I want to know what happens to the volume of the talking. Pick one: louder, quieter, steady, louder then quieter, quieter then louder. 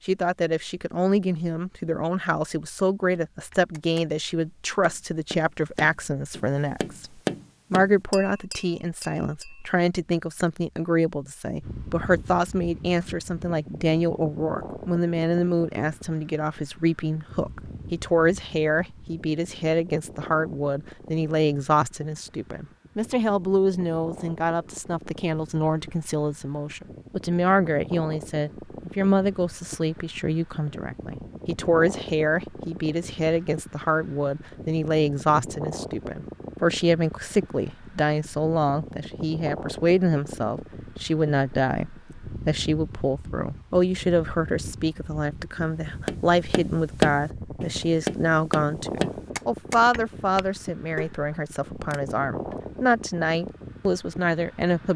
steady.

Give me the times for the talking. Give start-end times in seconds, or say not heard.
0.1-7.1, 7.7-54.9.